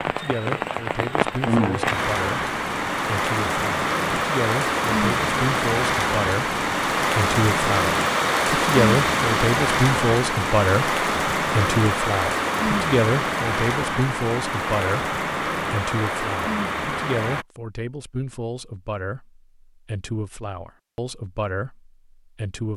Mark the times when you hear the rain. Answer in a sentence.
You can hear the rain from 0.0 to 17.4 s.